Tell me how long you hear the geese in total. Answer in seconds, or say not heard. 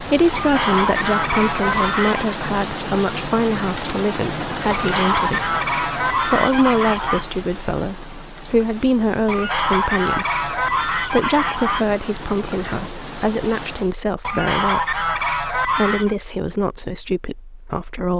9 s.